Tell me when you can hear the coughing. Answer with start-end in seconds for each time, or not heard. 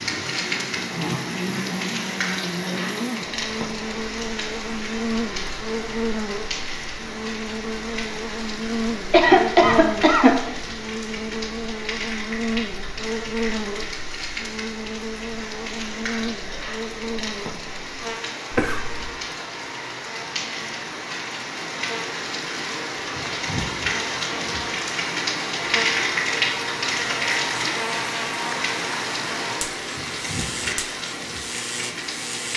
9.1-10.5, 18.5-19.1.